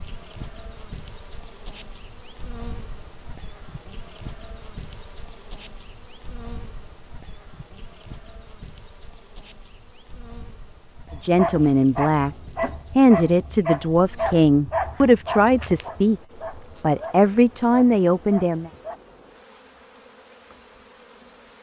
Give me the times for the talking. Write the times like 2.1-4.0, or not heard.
11.2-12.3, 12.9-16.2, 16.8-18.7.